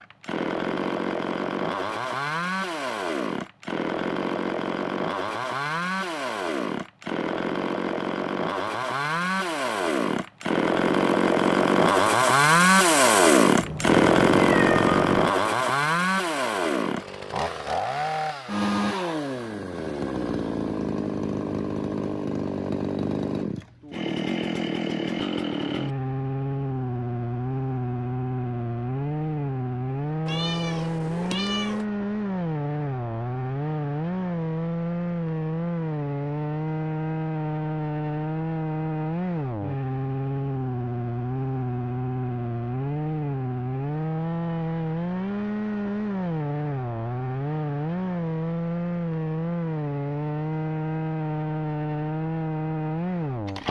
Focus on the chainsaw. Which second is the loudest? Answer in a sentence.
The volume of the chainsaw peaks at 13 seconds.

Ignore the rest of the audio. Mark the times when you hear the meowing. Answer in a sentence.
The meowing can be heard from 13.6 to 15.3 s and from 30.2 to 31.9 s.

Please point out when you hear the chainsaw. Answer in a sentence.
You can hear the chainsaw from 0.0 to 53.6 s.